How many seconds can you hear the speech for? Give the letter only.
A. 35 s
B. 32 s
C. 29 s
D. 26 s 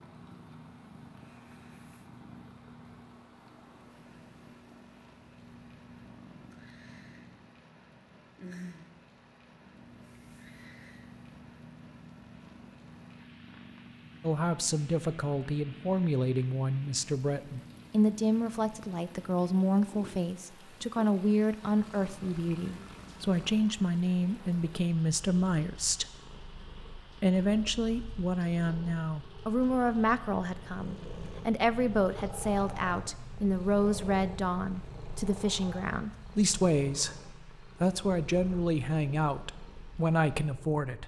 D.